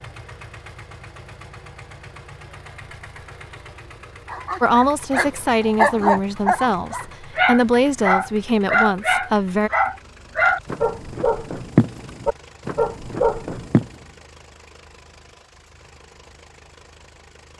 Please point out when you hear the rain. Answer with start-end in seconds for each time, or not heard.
not heard.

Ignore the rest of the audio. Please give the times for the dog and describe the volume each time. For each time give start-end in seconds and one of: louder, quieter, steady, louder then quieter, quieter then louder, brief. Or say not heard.
4.2-13.9 steady.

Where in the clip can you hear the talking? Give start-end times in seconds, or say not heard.
4.6-9.7.